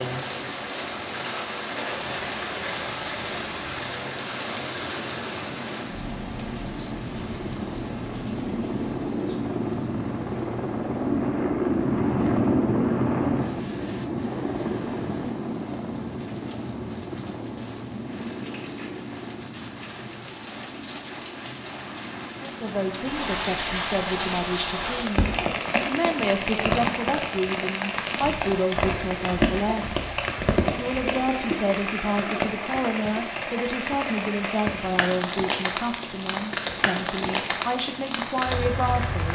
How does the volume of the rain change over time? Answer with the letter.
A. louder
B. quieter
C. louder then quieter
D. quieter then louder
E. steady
D.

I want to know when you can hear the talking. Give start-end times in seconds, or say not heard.
22.4-39.2.